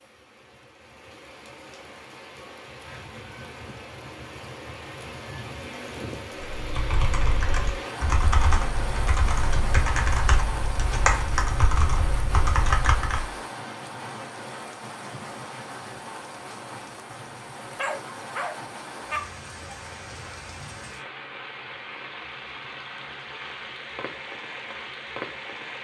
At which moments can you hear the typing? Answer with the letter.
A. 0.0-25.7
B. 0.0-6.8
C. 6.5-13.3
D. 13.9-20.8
C.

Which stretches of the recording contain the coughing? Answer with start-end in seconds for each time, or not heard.
not heard.